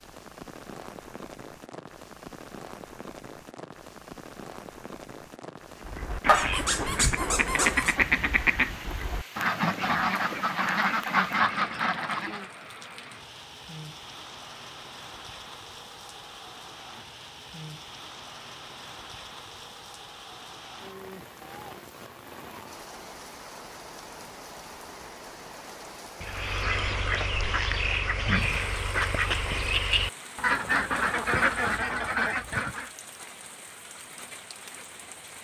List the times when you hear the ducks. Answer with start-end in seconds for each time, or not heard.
5.8-12.5, 26.2-32.9.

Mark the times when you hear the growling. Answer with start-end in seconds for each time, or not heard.
6.2-8.0.